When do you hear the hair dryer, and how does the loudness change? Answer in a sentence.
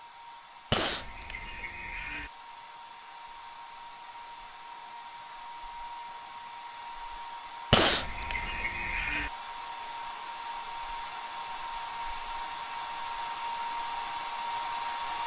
The hair dryer can be heard from 0.0 to 15.2 s, getting louder.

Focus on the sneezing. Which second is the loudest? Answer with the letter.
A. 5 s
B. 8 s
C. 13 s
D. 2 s
B.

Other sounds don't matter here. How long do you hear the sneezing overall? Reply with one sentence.
The sneezing can be heard for 3 seconds in total.